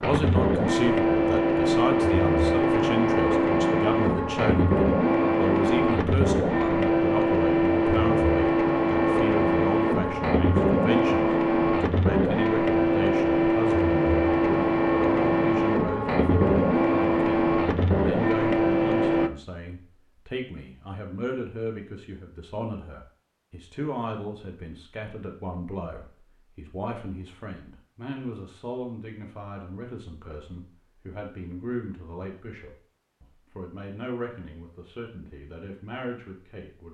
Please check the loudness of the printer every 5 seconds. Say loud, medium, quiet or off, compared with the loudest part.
loud, loud, loud, loud, off, off, off, off.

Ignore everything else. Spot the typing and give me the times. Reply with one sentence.
You can't hear the typing here.